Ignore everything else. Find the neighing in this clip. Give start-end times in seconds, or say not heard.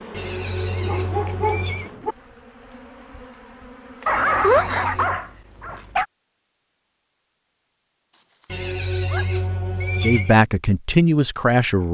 0.1-1.9, 4.1-5.2, 8.4-10.4.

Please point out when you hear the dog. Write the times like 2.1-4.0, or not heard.
0.8-2.1, 4.0-6.0, 8.1-9.9.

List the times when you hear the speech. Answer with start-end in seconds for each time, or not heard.
9.9-11.9.